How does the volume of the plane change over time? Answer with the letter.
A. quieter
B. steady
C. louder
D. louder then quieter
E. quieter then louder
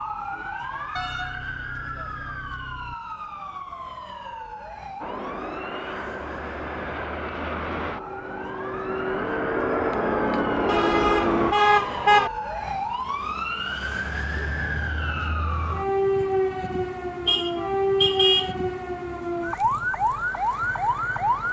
C.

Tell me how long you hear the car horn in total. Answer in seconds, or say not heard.
5 s.